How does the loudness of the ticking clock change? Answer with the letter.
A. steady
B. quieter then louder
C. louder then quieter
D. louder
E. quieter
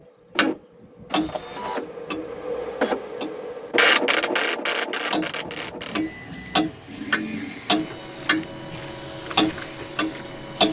B.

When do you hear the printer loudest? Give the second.
4 s.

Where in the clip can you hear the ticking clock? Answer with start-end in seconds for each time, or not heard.
0.3-4.4, 5.1-10.6.